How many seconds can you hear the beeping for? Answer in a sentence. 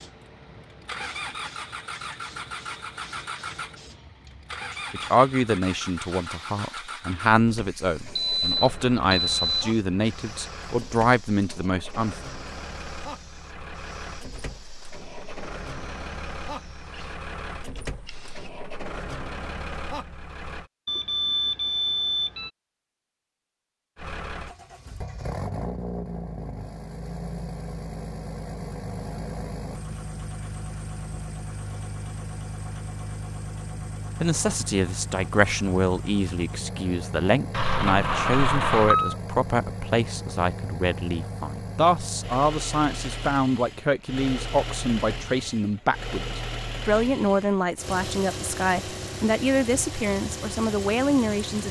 You can hear the beeping for 5 seconds altogether.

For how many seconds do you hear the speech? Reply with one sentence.
You can hear the speech for 25 seconds altogether.